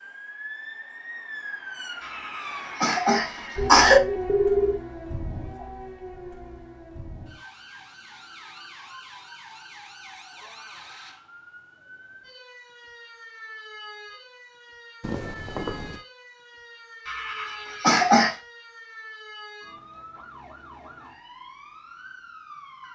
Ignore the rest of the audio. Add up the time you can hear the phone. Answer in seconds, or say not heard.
3 s.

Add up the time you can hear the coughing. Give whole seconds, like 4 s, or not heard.
3 s.